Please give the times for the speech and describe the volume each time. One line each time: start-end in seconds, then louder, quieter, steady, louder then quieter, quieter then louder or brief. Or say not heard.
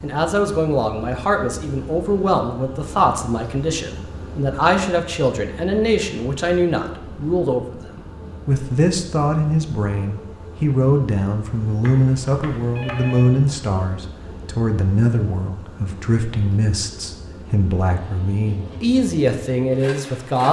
0.0-20.4 steady.